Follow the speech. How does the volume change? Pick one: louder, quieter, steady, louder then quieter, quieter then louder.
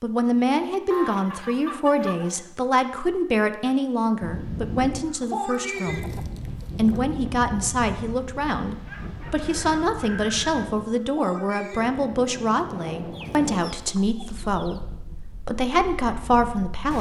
steady.